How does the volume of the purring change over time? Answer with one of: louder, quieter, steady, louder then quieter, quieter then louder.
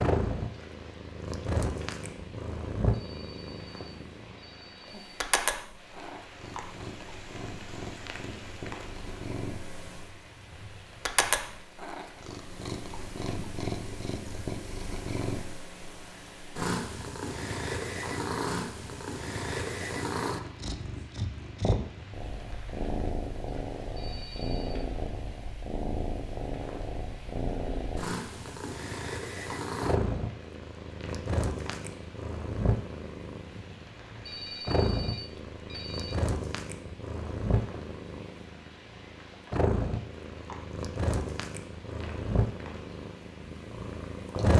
steady.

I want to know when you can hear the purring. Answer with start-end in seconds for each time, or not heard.
0.0-44.5.